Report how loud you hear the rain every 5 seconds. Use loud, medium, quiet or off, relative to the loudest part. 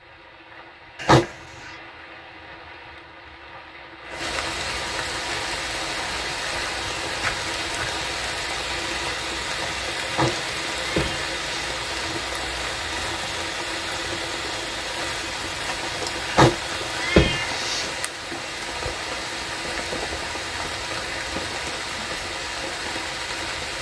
medium, loud, loud, loud, loud.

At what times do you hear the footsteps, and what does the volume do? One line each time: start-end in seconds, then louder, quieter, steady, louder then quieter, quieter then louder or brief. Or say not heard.
not heard.